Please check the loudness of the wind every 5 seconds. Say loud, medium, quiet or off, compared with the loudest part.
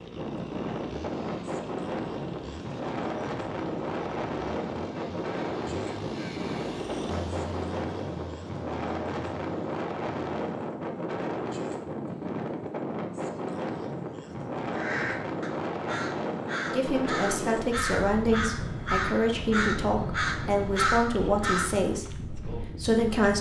loud, loud, loud, loud, medium.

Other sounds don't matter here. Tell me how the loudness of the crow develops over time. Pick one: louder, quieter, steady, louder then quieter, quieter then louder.
louder.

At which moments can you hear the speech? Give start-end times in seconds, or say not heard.
16.7-23.3.